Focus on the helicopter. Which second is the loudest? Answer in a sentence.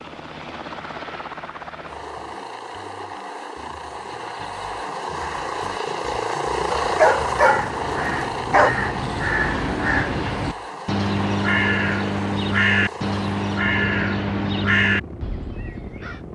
The loudest moment of the helicopter is at 7 seconds.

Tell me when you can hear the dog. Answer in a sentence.
The dog can be heard from 6.8 to 8.7 s.